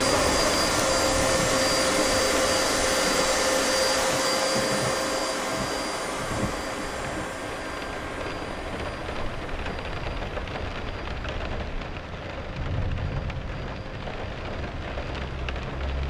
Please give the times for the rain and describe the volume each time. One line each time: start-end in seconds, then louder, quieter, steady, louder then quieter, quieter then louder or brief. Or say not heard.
0.0-16.0 steady.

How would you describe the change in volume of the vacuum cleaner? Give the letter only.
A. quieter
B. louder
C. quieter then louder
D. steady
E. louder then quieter
A.